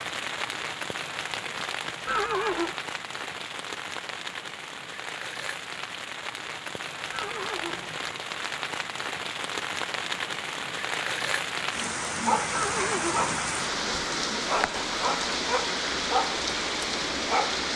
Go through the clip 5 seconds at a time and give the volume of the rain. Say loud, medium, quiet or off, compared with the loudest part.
medium, medium, loud, loud.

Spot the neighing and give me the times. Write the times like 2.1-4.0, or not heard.
2.0-2.8, 7.1-8.1, 12.5-13.3.